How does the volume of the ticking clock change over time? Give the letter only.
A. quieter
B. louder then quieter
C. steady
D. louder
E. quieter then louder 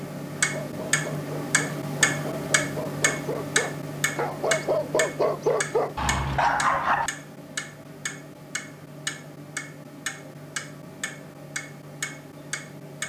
A.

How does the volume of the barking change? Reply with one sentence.
The volume of the barking goes up.